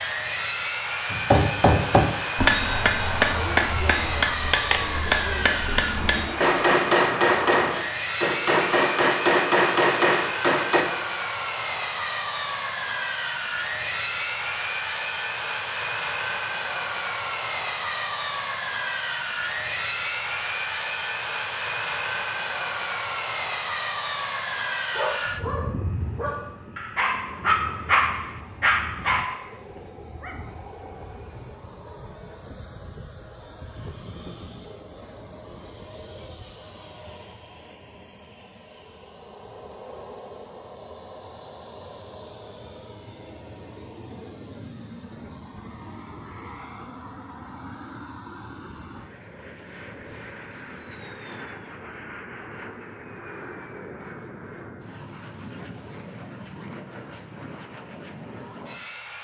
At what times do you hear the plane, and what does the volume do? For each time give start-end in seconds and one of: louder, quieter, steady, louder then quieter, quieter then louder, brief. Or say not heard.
0.0-59.2 quieter.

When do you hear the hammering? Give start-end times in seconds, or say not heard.
1.1-10.8.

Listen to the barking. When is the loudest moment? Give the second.
28 s.